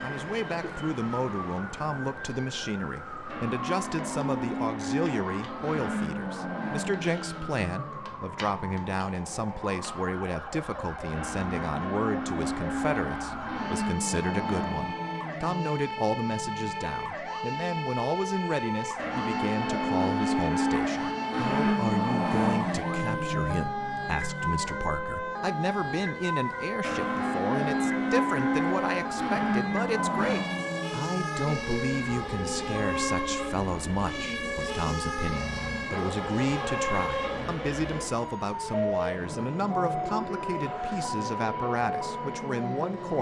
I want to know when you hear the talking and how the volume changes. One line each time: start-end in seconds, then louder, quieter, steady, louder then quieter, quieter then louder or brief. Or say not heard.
0.0-43.1 steady.